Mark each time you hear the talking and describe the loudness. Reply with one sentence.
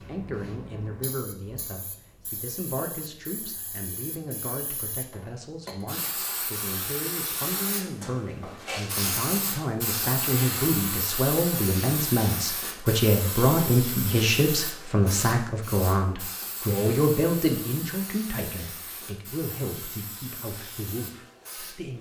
You can hear the talking from 0.1 to 21.9 s, getting louder then quieter.